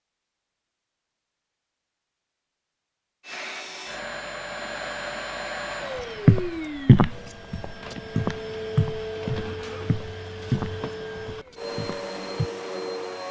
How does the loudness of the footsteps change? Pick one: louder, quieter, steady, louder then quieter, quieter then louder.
quieter.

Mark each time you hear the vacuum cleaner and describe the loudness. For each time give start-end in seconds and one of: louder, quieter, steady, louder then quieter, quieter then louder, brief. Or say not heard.
3.2-13.2 steady.